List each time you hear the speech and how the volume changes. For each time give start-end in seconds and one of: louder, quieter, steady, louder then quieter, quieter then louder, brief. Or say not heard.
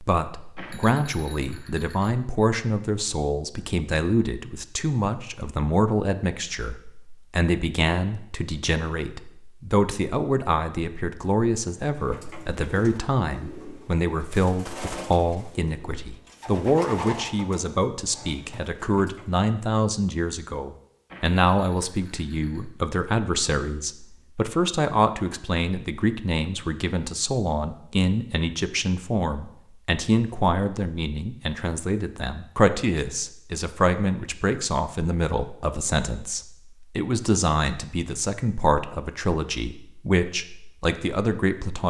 0.0-41.8 steady.